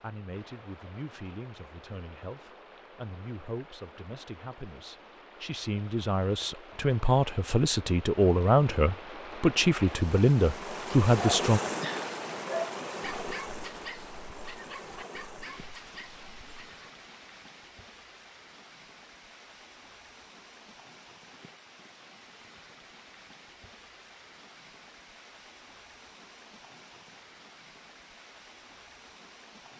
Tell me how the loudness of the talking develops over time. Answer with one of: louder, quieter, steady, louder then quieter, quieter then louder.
louder.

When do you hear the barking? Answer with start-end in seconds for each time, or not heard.
11.2-16.8.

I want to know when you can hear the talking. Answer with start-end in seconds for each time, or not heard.
0.0-11.6.